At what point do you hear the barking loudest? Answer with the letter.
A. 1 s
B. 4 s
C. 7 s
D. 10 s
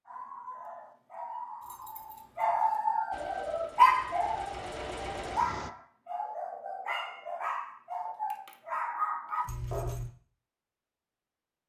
B.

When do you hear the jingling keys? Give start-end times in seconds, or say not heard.
1.6-2.5, 9.4-10.1.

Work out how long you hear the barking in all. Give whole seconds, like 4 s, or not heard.
10 s.